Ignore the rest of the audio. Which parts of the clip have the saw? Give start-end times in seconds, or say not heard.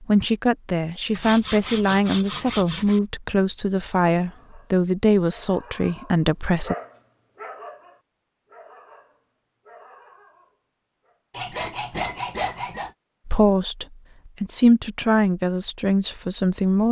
1.1-3.0, 11.3-12.9.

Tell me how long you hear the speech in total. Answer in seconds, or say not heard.
10 s.